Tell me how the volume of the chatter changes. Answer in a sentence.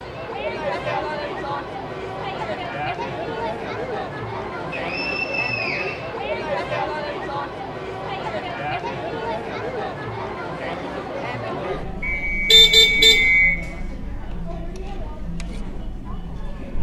The volume of the chatter goes down.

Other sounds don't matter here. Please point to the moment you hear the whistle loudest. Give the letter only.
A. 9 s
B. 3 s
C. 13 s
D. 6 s
C.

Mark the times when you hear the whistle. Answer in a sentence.
The whistle can be heard from 4.7 to 6.0 s and from 12.0 to 13.6 s.